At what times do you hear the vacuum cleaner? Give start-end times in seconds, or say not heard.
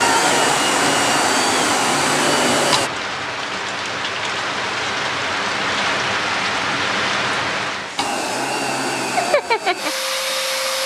0.0-2.9, 8.0-10.8.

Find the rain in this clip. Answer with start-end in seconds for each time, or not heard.
0.0-8.2.